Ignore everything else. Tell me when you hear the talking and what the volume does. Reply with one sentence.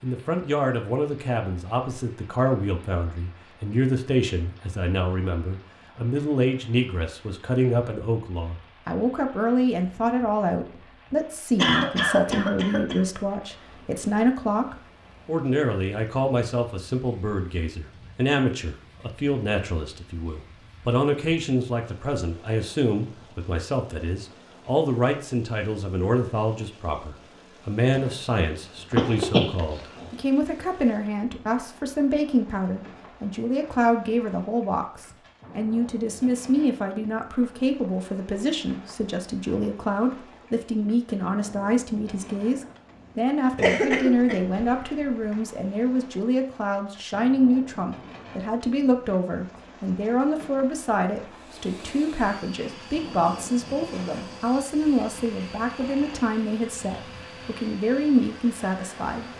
The talking can be heard from 0.0 to 59.3 s, at a steady volume.